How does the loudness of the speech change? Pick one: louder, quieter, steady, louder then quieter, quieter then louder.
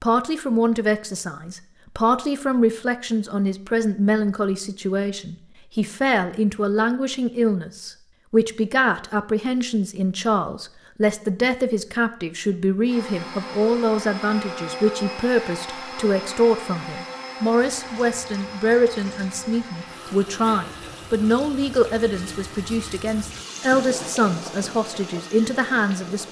steady.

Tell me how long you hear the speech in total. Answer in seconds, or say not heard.
26 s.